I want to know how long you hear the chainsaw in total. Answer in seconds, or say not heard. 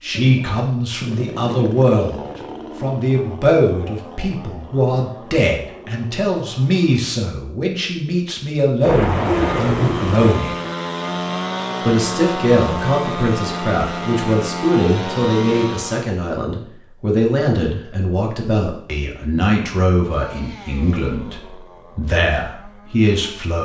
18 s.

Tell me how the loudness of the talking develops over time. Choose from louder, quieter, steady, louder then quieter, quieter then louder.
steady.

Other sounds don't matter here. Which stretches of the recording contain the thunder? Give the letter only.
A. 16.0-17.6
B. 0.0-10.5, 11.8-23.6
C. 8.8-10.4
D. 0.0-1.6
C.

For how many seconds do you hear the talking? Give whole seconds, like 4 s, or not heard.
22 s.